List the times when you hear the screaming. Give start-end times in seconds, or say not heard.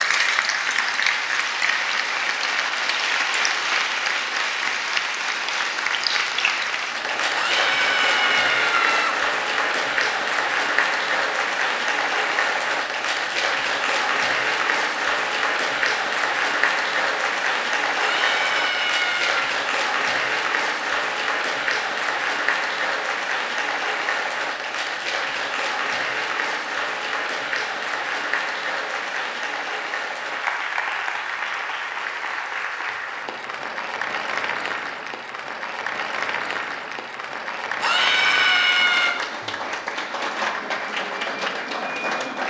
7.3-9.2, 17.9-19.4, 37.8-39.1.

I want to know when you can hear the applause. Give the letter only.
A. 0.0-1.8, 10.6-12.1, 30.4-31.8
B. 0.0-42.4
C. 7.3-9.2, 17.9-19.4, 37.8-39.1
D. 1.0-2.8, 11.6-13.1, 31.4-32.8
B.